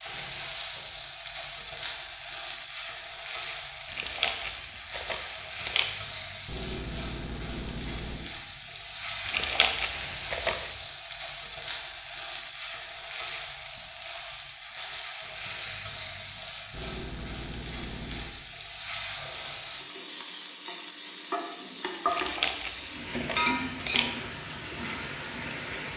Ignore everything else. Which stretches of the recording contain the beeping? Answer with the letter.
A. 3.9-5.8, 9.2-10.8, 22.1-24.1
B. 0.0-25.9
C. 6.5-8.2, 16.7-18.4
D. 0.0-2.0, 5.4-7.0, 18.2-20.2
C.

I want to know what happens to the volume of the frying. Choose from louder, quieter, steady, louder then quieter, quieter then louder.
steady.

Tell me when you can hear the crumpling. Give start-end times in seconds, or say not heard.
3.9-5.8, 9.2-10.8, 22.1-24.1.